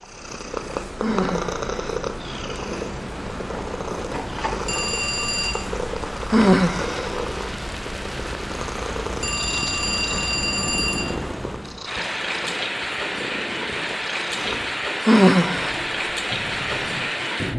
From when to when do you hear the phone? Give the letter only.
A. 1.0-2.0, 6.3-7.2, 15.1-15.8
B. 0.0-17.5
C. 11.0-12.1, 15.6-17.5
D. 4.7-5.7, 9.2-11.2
D.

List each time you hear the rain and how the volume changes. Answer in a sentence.
You can hear the rain from 0.0 to 17.5 s, getting louder.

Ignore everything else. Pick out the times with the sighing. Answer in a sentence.
You can hear the sighing from 1.0 to 2.0 s, from 6.3 to 7.2 s and from 15.1 to 15.8 s.